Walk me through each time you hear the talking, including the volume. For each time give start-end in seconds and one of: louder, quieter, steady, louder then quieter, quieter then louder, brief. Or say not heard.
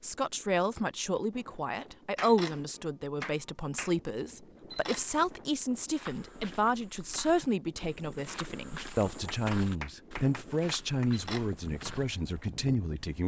0.0-13.2 steady.